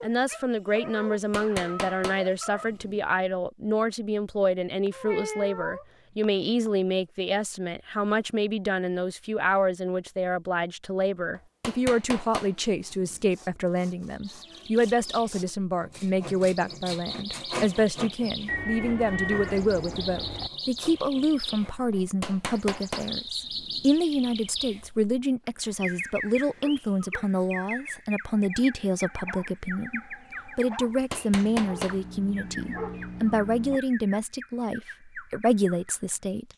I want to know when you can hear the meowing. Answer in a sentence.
The meowing can be heard from 4.8 to 6.7 s and from 18.4 to 20.5 s.